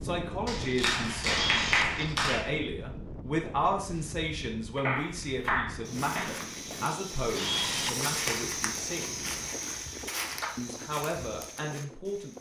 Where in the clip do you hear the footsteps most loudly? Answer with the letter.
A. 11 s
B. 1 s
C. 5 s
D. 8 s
D.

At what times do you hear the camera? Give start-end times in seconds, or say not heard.
1.2-2.1, 7.3-8.2.